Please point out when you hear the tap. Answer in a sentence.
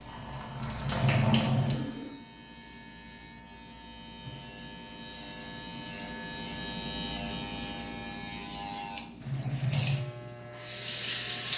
You can hear the tap from 0.0 to 2.1 s and from 9.2 to 11.5 s.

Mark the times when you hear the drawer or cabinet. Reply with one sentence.
You can't hear the drawer or cabinet here.